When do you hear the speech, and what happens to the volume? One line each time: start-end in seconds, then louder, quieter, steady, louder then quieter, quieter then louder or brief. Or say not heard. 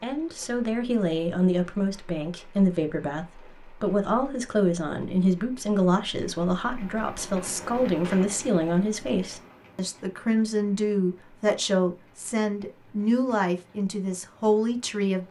0.0-15.2 steady.